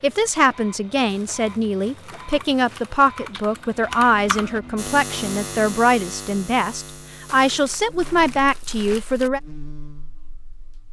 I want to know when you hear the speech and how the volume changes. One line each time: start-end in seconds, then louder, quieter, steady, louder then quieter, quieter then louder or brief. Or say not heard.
0.0-9.4 steady.